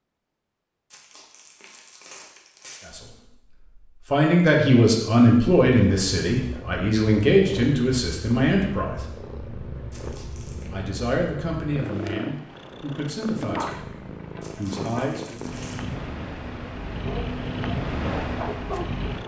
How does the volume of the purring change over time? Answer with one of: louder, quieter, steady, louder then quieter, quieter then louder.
louder.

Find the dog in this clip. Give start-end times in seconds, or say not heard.
16.9-19.2.